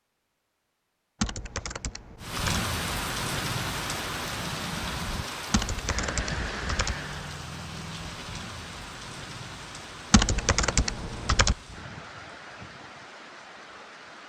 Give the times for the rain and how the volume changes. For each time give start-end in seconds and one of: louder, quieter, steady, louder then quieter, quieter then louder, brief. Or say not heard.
2.2-14.2 quieter.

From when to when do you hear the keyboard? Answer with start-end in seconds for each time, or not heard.
1.2-2.6, 5.5-7.0, 10.1-11.6.